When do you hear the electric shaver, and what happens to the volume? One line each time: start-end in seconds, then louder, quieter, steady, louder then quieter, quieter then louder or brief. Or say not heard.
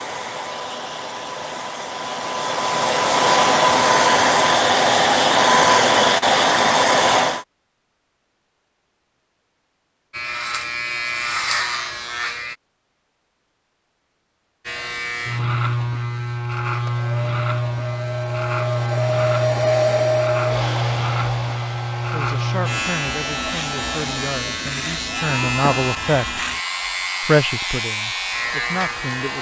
10.1-12.6 brief
14.7-29.3 steady.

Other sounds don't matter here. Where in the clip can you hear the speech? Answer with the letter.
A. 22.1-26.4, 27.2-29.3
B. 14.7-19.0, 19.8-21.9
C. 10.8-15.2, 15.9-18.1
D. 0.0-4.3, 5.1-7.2
A.